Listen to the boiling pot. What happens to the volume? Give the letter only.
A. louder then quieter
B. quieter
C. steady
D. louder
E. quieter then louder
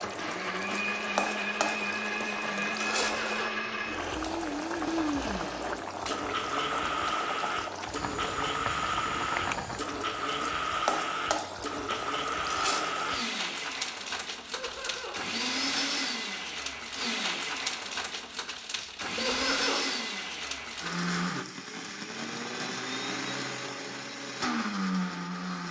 C.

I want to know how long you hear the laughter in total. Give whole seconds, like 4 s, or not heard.
2 s.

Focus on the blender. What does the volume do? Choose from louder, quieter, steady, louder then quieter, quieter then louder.
steady.